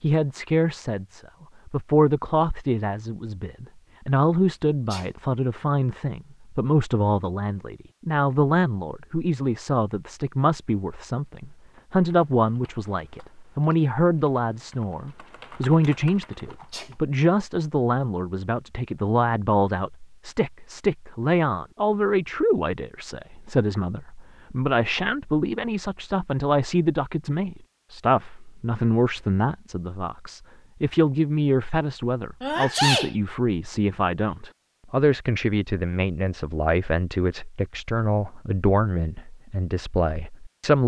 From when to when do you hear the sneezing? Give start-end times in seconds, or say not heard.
4.7-5.2, 16.4-16.9, 32.4-33.1.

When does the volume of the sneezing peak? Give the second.
33 s.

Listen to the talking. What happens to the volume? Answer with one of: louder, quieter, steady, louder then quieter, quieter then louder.
steady.